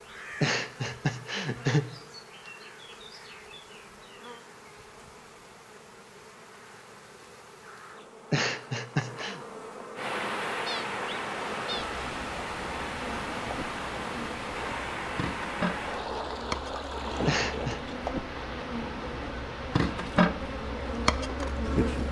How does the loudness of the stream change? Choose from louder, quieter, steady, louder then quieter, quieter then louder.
quieter.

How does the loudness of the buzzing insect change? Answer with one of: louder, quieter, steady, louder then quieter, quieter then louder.
louder.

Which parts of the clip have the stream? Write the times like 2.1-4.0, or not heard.
9.9-22.0.